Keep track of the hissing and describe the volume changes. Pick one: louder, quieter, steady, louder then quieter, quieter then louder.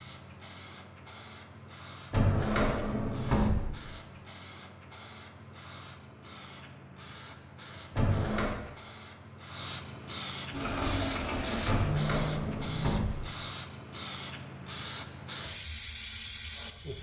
louder.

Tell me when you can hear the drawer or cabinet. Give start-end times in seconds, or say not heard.
2.1-3.8, 8.0-8.6, 11.7-13.3.